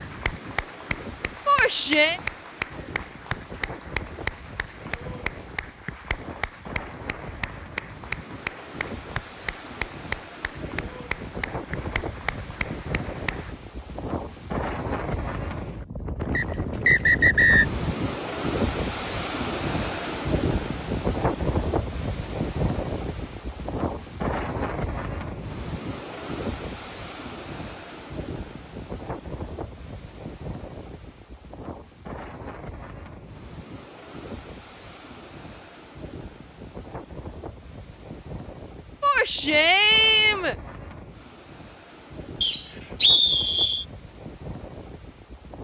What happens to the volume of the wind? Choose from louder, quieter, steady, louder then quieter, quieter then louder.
louder then quieter.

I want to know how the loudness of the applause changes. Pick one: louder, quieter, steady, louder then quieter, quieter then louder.
steady.